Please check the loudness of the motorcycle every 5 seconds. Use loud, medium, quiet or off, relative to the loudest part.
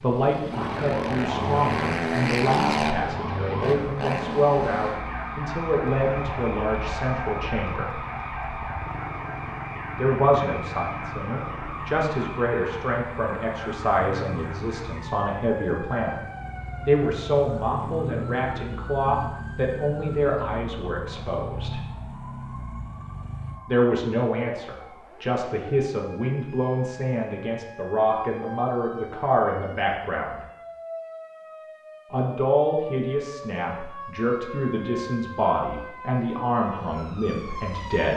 loud, medium, medium, medium, medium, off, off, off.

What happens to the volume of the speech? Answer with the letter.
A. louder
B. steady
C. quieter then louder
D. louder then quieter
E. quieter
B.